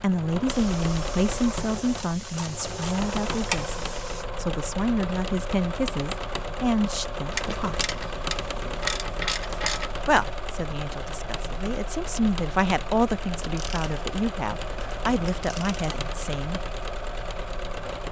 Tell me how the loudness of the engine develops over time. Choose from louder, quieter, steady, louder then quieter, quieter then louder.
steady.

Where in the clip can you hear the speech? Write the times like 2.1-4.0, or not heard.
0.0-7.8, 10.1-16.6.